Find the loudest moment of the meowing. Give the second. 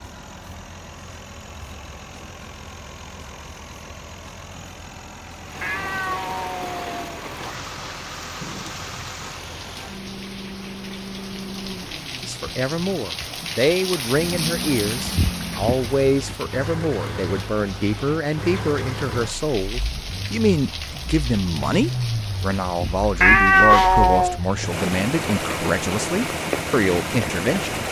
24 s.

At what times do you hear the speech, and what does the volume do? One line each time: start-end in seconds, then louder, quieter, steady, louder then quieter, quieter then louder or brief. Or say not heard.
12.2-27.8 steady.